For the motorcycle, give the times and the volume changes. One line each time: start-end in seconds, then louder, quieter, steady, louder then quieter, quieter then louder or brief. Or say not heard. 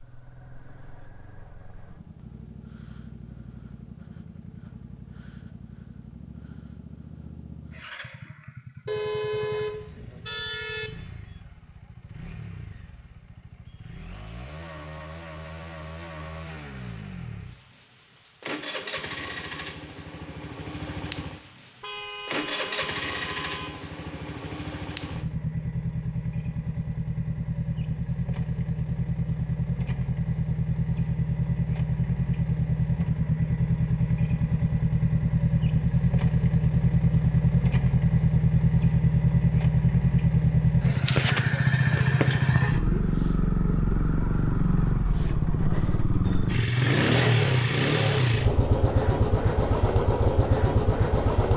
0.0-51.5 louder.